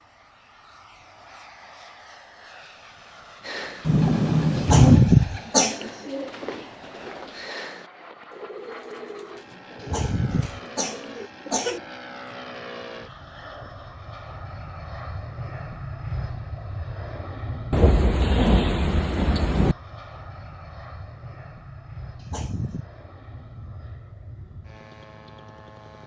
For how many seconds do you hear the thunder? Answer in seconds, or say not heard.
3 s.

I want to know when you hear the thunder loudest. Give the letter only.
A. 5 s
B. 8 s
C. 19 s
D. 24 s
A.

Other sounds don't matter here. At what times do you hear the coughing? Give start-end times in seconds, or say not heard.
4.5-5.9, 9.8-11.8, 22.1-22.9.